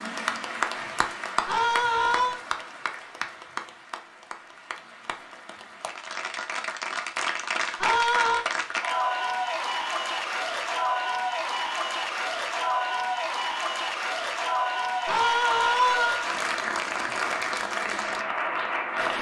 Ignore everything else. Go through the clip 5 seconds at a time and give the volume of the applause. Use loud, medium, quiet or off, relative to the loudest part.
medium, loud, loud, loud.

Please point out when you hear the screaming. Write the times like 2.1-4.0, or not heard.
1.4-2.4, 7.8-8.4, 15.1-16.2.